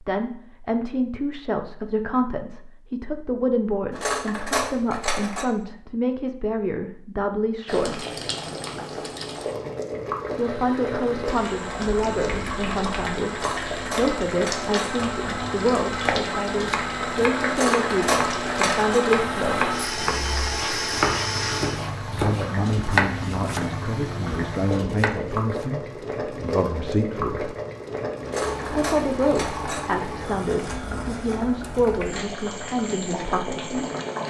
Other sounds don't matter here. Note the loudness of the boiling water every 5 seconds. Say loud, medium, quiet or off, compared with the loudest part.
off, loud, loud, loud, loud, loud, loud.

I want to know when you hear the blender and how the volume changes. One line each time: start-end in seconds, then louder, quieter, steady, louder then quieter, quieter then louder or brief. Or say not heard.
10.2-21.9 louder.